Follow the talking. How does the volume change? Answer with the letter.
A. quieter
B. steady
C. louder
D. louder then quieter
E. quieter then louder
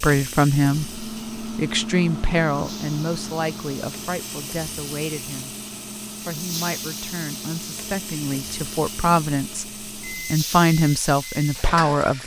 E.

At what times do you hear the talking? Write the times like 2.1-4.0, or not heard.
0.0-12.2.